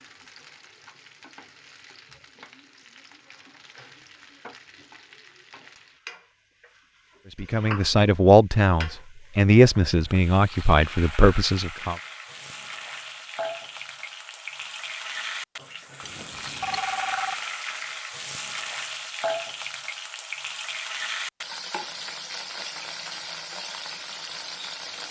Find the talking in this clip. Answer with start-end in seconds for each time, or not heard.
7.3-11.9.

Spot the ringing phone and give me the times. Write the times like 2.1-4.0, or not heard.
16.0-17.4.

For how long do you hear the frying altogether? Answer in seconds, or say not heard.
25 s.